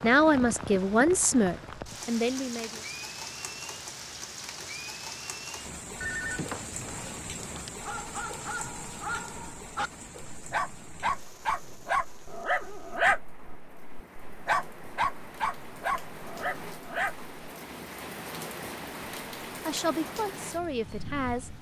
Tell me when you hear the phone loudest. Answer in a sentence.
The volume of the phone peaks at 6 seconds.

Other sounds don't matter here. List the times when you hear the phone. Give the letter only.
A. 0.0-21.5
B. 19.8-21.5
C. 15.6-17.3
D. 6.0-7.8
D.